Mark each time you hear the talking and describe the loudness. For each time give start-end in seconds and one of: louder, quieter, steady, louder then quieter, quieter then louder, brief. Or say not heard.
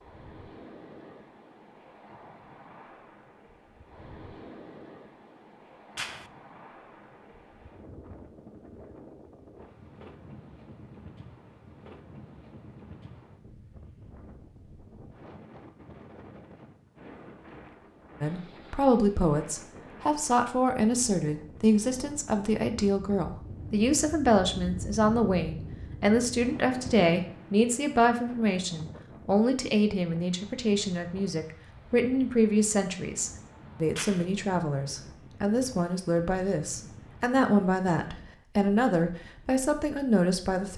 18.2-40.7 steady.